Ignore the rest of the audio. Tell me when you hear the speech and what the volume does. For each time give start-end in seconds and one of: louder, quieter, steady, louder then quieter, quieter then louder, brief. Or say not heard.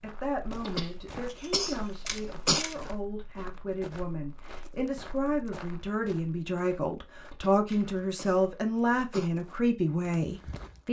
0.0-10.8 louder.